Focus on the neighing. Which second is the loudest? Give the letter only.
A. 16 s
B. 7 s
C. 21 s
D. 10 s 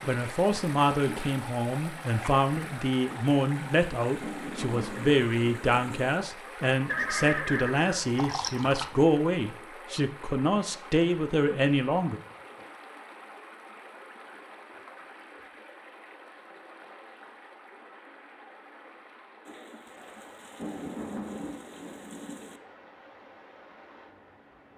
B.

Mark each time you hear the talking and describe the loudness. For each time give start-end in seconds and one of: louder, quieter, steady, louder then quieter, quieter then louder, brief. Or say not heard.
0.0-12.2 steady.